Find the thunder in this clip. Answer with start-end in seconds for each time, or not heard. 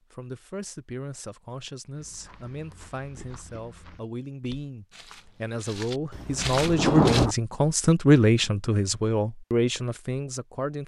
6.1-7.3.